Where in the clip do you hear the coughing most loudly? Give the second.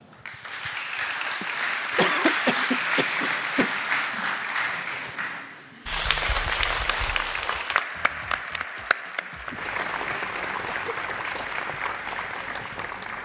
2 s.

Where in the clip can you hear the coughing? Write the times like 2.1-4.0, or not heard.
1.4-3.8, 10.7-11.6.